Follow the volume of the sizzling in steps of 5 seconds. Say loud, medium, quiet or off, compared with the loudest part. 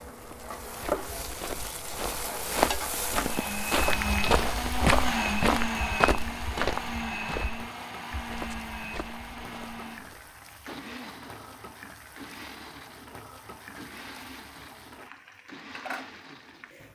loud, medium, quiet, medium.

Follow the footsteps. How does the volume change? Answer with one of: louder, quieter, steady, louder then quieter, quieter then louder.
louder then quieter.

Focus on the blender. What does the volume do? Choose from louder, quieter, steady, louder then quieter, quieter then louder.
quieter.